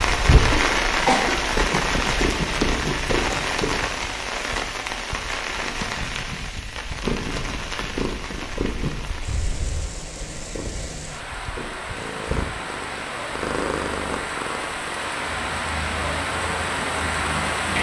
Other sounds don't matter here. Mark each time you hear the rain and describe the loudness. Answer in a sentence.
The rain can be heard from 0.0 to 17.7 s, getting quieter then louder.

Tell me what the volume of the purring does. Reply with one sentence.
The loudness of the purring goes down.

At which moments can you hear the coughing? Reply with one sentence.
The coughing can be heard from 0.5 to 1.4 s.